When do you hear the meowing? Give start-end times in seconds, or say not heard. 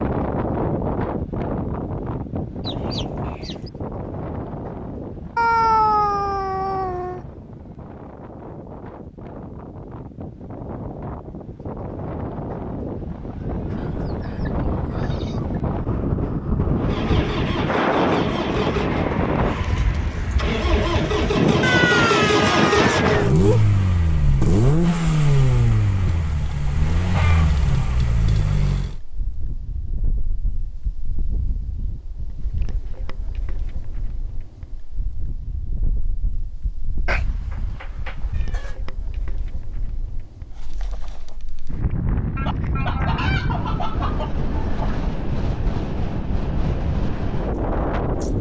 5.3-7.2, 21.6-23.6, 37.0-38.7.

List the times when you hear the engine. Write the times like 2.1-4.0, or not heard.
16.8-29.0.